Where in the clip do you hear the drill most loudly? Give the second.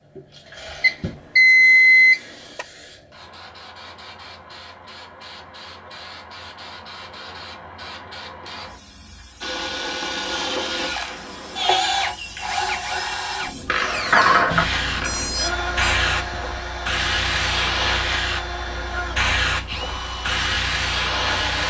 12 s.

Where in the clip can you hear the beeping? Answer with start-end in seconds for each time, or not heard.
0.8-2.6, 14.4-15.9.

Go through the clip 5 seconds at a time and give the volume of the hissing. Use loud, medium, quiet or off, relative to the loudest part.
quiet, quiet, loud, loud, loud.